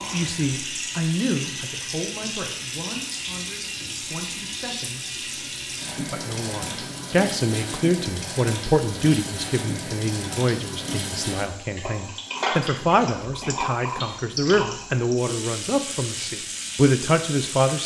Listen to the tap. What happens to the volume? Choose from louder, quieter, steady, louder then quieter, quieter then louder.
steady.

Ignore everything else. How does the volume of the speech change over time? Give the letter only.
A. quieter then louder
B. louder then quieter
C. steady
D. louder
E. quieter
D.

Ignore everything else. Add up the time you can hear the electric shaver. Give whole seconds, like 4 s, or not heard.
not heard.